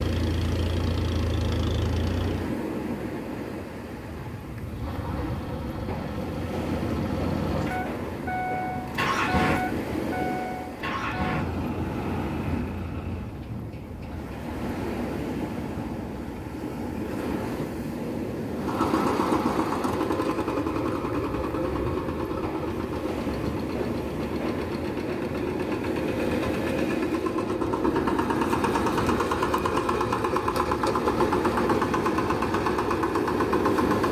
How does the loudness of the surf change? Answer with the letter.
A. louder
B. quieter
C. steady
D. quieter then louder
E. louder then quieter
C.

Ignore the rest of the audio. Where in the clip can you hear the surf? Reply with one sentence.
The surf can be heard from 0.0 to 34.0 s.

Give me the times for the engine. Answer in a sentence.
The engine can be heard from 0.0 to 2.5 s, from 4.7 to 13.4 s and from 18.6 to 34.0 s.